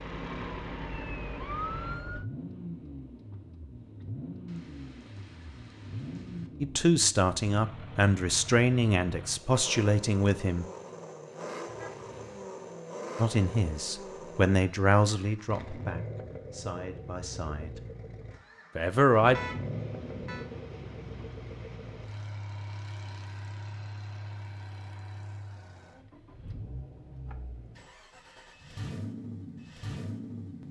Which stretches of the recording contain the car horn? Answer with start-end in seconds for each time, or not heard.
11.7-12.5, 19.3-20.5.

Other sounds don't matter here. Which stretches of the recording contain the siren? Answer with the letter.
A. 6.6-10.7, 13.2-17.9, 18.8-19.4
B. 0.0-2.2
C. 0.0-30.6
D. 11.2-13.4
B.